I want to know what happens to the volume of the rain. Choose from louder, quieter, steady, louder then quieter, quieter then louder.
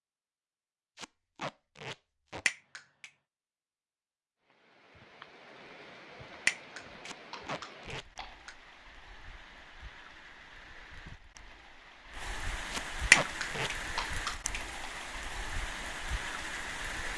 louder.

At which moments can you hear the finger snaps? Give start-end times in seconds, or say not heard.
2.5-3.1, 6.5-8.5, 13.1-14.6.